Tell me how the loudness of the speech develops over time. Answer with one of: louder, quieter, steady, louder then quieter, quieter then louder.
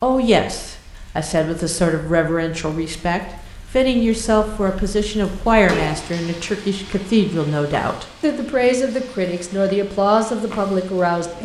steady.